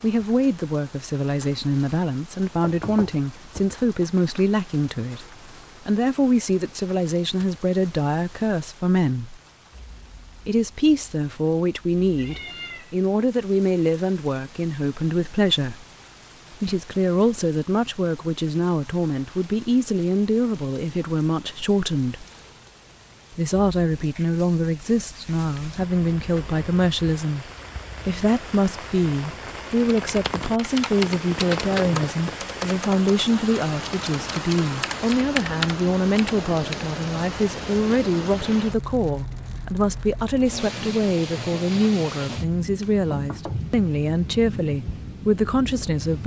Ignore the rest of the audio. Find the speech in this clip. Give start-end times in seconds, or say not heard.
0.0-5.2, 5.8-9.4, 10.4-15.8, 16.5-22.2, 23.4-46.2.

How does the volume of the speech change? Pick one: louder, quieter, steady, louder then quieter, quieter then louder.
steady.